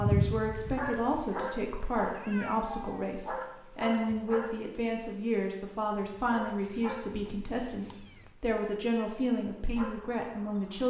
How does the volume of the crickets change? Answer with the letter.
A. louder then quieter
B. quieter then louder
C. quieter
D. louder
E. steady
C.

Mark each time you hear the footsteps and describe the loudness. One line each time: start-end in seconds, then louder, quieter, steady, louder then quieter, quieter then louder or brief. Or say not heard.
not heard.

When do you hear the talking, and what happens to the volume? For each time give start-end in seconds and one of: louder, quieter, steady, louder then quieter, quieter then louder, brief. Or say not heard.
0.0-10.8 steady.